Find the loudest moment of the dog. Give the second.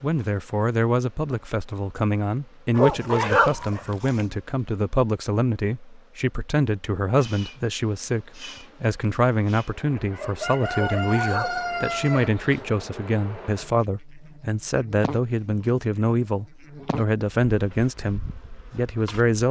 3 s.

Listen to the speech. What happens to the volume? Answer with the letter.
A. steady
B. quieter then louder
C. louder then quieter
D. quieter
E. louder
A.